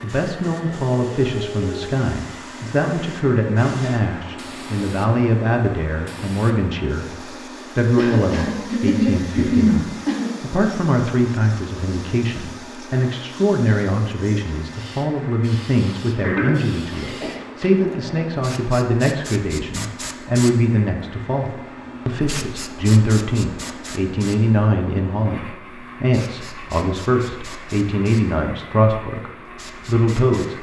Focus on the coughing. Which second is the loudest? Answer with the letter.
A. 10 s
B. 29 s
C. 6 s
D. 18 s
A.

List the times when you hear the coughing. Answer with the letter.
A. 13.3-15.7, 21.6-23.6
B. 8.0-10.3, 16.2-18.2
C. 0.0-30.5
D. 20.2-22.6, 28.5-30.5
B.